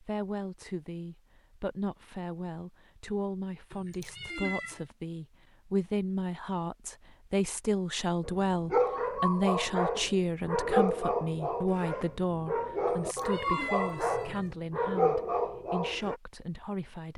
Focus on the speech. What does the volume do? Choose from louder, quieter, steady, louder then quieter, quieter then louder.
louder then quieter.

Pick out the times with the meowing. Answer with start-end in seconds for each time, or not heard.
3.7-4.8, 12.8-14.6.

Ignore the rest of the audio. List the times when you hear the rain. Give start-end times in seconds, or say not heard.
not heard.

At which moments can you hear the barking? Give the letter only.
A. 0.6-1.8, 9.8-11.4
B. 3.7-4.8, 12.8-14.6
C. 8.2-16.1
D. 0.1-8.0
C.